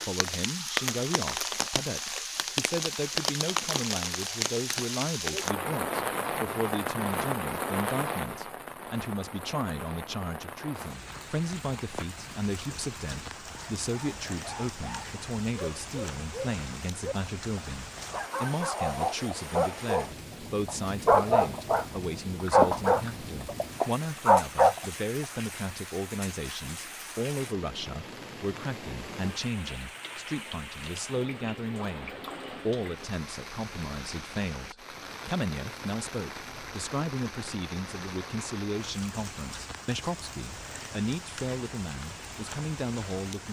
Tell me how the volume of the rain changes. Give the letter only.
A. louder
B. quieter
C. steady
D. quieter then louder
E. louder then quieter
B.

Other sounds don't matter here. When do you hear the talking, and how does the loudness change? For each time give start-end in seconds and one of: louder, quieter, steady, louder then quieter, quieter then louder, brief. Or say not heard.
0.1-43.4 steady.